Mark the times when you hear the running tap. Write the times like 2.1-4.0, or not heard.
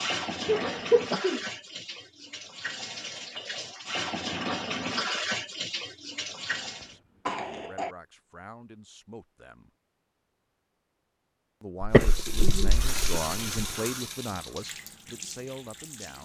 0.0-7.0, 11.9-16.2.